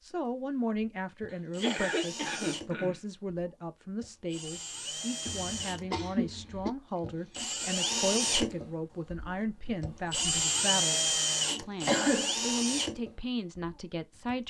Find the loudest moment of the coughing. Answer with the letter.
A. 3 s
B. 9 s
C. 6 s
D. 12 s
D.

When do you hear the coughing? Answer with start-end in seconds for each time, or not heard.
1.6-3.0, 5.2-6.7, 11.8-12.3.